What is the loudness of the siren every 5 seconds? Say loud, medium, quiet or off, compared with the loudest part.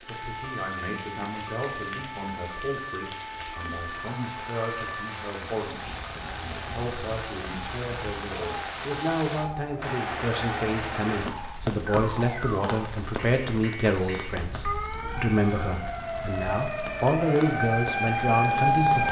medium, quiet, medium, loud.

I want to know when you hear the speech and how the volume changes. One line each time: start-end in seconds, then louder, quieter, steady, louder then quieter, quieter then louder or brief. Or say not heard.
0.1-19.0 louder.